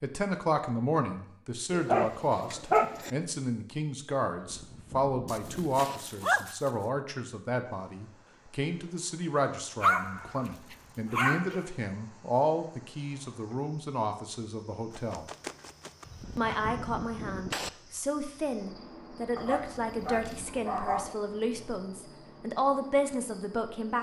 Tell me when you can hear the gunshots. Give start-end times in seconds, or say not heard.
4.3-6.0, 16.1-17.7.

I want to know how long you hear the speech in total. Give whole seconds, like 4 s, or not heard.
23 s.